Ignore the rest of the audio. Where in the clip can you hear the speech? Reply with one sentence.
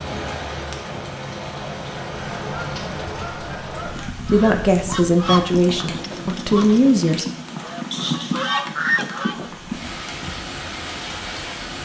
You can hear the speech from 4.3 to 7.2 s.